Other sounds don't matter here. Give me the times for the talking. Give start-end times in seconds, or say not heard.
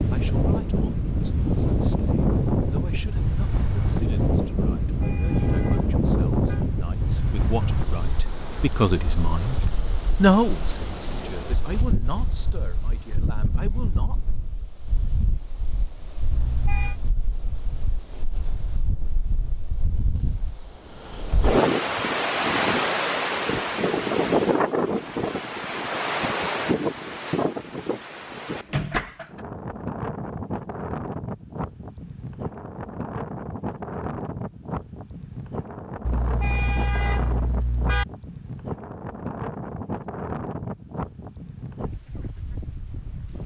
0.1-9.6, 10.2-14.2.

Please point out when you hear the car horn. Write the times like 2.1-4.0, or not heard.
4.8-6.7, 16.3-17.0, 36.0-38.0.